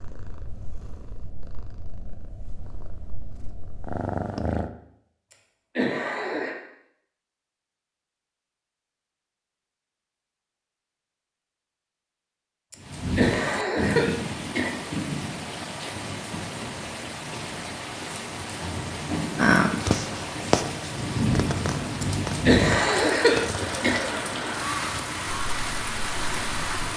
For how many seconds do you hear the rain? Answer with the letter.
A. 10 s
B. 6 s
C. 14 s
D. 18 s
C.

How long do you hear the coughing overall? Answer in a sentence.
The coughing can be heard for 5 seconds in total.